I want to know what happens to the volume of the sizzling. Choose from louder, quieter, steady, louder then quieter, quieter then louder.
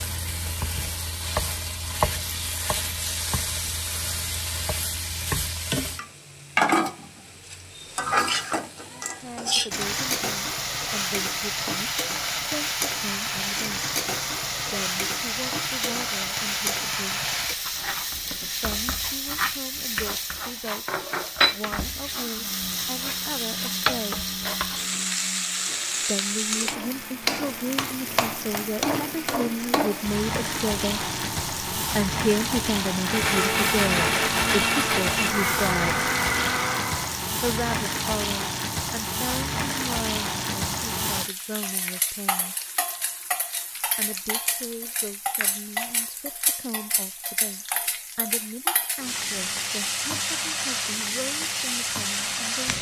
steady.